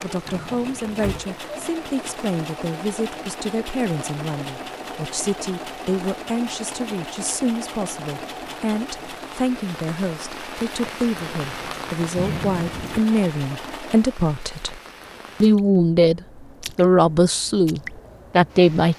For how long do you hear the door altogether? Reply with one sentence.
The door can be heard for 2 seconds in total.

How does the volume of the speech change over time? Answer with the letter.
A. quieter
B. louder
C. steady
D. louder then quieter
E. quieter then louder
B.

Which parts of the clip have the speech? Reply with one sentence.
The speech can be heard from 0.0 to 14.8 s and from 15.4 to 18.9 s.